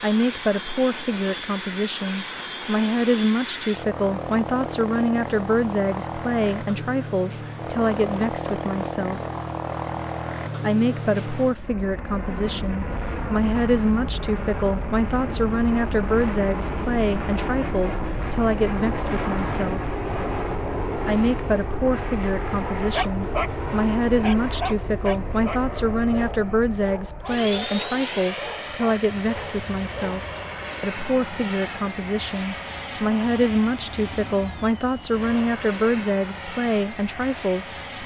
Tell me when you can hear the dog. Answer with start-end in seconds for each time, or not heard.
22.9-30.2.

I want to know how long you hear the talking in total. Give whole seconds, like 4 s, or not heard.
35 s.